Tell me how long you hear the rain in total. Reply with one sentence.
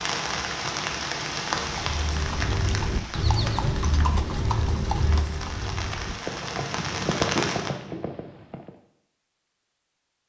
The rain can be heard for 8 seconds in total.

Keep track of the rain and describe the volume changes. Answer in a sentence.
The volume of the rain goes down, then up.